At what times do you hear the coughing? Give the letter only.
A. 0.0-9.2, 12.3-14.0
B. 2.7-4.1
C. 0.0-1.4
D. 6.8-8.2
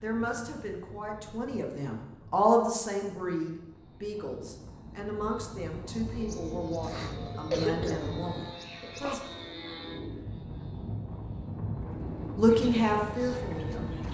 D.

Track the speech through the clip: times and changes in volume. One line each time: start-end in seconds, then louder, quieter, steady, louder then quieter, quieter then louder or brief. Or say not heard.
0.0-9.2 louder then quieter
12.3-14.0 brief.